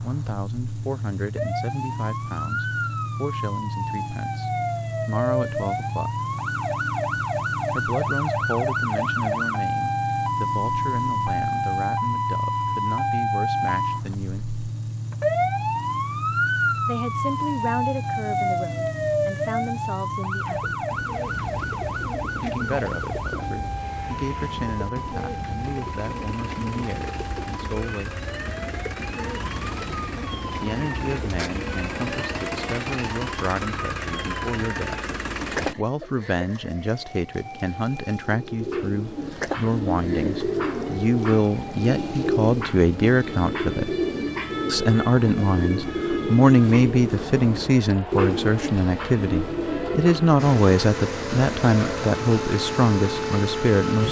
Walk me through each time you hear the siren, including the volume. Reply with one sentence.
You can hear the siren from 0.0 to 54.0 s, getting quieter.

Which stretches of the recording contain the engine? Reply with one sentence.
The engine can be heard from 0.0 to 35.8 s and from 50.4 to 54.0 s.